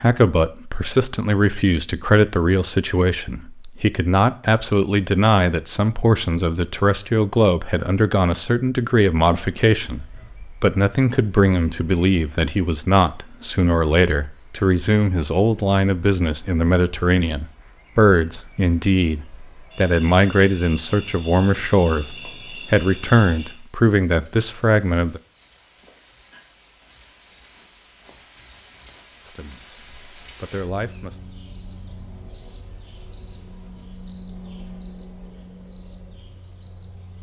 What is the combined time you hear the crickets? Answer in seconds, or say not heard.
28 s.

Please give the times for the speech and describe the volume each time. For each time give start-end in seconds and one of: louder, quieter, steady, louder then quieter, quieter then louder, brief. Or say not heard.
0.0-25.2 steady
29.2-31.2 brief.